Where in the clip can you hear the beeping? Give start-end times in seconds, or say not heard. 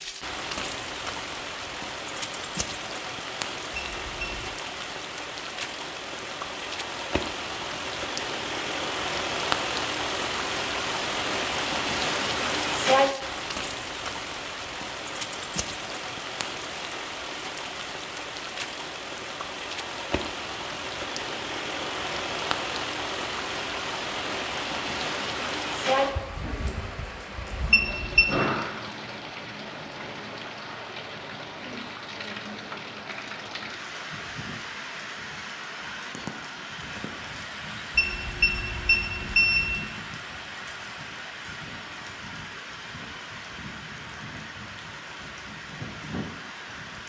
3.8-4.5, 27.7-28.2, 38.0-39.8.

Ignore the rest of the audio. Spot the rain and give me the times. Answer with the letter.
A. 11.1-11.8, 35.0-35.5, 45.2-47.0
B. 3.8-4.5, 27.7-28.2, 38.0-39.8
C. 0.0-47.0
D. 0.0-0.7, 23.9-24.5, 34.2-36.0
C.